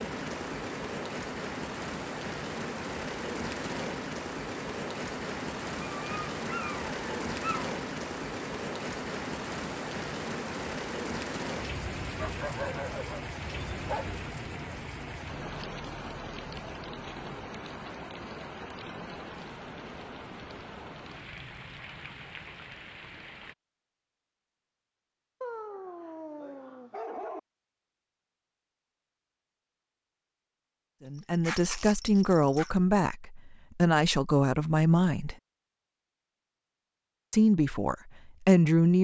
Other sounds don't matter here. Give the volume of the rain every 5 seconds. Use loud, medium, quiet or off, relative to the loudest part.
loud, loud, loud, medium, medium, off, off, off.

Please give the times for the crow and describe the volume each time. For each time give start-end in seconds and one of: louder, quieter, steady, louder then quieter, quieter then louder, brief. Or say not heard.
not heard.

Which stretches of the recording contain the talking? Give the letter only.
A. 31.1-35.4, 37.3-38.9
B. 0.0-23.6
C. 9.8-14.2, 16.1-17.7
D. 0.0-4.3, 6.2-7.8
A.